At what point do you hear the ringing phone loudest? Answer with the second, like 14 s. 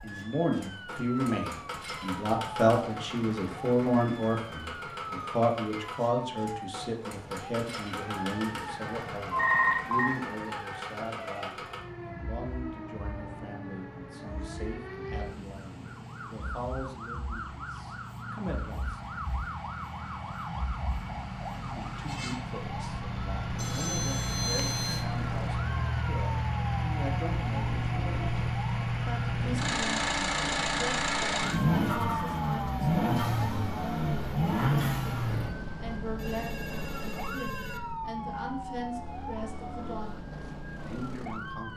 10 s.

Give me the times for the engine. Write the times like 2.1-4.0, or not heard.
0.0-35.5.